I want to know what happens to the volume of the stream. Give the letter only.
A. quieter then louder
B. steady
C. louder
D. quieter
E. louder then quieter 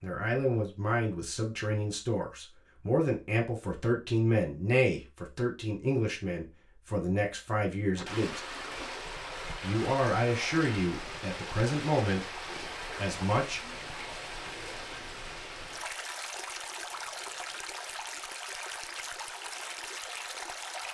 B.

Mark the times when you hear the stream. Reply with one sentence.
You can hear the stream from 8.0 to 20.9 s.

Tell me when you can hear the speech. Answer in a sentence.
The speech can be heard from 0.0 to 8.4 s, from 9.6 to 12.2 s and from 12.9 to 13.6 s.